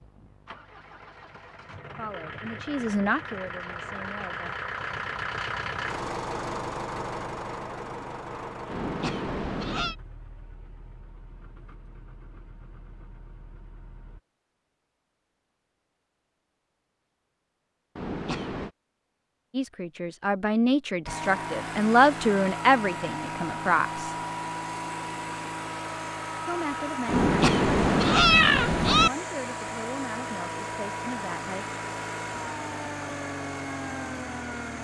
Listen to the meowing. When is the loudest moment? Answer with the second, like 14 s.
28 s.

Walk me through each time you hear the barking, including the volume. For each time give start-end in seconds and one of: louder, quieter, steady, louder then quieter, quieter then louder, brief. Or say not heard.
not heard.